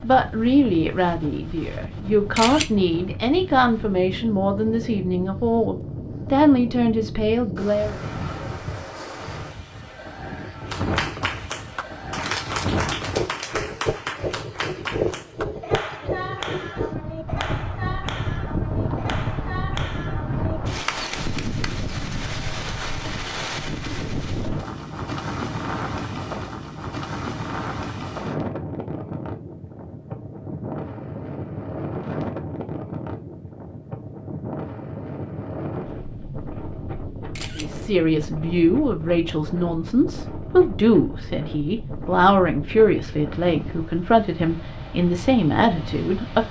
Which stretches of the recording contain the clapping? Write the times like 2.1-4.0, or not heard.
10.7-21.9.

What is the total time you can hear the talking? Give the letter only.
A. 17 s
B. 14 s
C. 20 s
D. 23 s
A.